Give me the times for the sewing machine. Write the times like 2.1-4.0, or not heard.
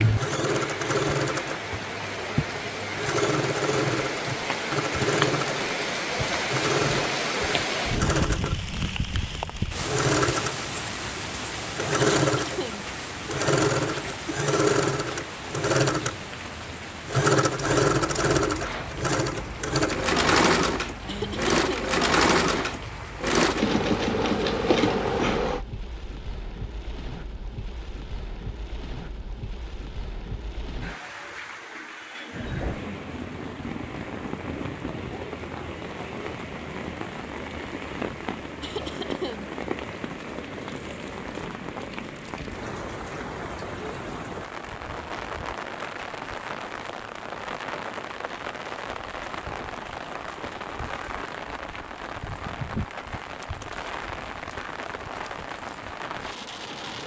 0.0-25.6.